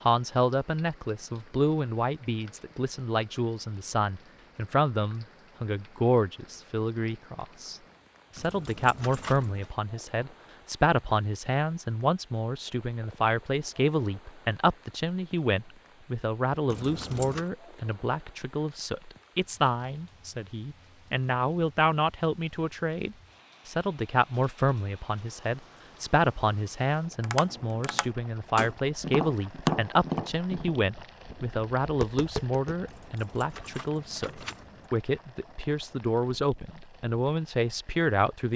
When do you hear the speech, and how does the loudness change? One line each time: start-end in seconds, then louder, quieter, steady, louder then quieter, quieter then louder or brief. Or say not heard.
0.0-38.5 steady.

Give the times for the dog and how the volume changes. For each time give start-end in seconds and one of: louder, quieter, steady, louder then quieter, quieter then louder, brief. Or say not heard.
not heard.